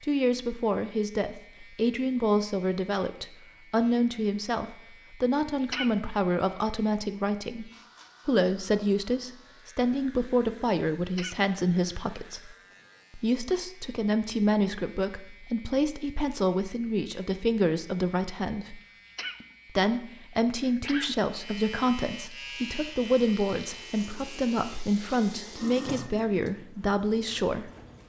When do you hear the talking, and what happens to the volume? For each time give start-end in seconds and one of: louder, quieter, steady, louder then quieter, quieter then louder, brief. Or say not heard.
0.0-12.6 steady
13.2-18.8 steady
19.7-27.7 steady.